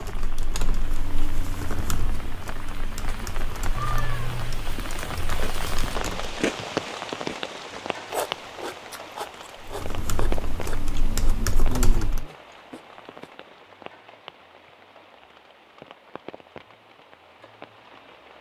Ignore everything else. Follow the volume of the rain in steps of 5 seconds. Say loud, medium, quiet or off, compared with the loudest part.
medium, loud, medium, quiet.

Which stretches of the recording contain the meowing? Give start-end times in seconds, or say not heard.
3.8-4.6.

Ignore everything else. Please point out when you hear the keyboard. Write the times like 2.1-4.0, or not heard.
0.0-6.5, 9.6-12.2.